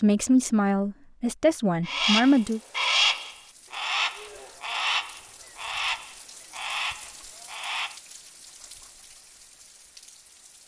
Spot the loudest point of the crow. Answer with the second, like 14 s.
3 s.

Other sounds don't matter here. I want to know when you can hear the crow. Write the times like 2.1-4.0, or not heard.
1.9-8.0.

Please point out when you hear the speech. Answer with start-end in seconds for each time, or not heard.
0.0-2.6.